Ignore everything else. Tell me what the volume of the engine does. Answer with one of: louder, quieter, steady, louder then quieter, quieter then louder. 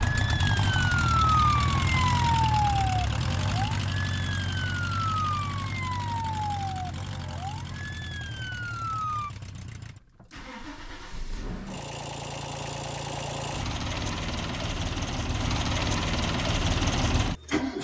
quieter then louder.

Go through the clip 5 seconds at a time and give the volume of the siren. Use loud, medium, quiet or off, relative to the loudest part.
loud, medium, off, off.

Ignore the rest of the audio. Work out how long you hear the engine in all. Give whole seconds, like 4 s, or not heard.
18 s.